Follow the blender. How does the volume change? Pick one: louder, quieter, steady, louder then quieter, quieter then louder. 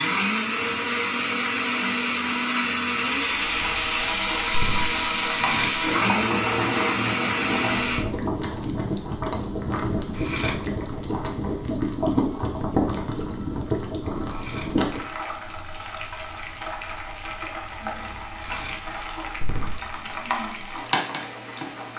steady.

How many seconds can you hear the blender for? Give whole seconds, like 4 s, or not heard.
8 s.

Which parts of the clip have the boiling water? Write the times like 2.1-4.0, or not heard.
3.4-21.9.